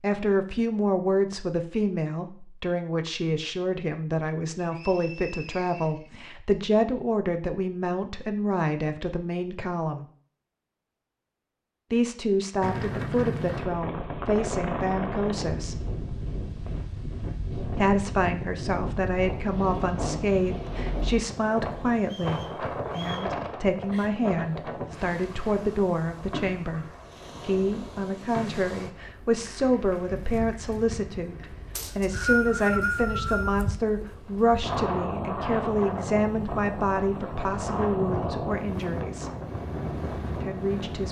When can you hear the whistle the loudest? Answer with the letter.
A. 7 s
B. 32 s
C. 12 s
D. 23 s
B.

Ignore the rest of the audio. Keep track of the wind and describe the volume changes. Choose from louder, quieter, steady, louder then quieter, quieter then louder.
quieter then louder.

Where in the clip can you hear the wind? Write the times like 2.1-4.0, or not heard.
12.6-41.0.